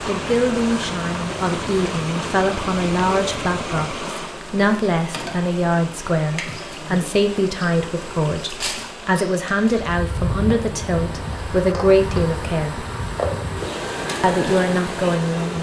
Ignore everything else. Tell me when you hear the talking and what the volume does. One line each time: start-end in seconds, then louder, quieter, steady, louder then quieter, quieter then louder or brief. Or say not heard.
0.1-12.8 steady
14.2-15.5 brief.